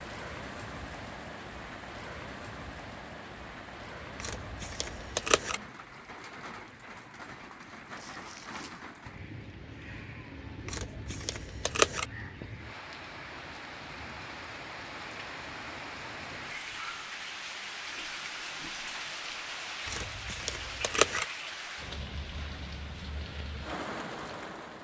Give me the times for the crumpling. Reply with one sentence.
The crumpling can be heard from 8.0 to 8.8 s.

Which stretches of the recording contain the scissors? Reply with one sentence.
The scissors can be heard from 4.2 to 5.6 s, from 10.7 to 12.1 s and from 19.9 to 21.2 s.